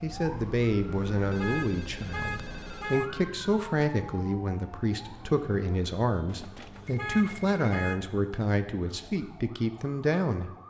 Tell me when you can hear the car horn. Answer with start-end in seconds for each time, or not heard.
1.4-3.2, 7.0-8.0.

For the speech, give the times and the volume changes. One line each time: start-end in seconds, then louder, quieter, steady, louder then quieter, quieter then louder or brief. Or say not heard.
0.0-10.5 steady.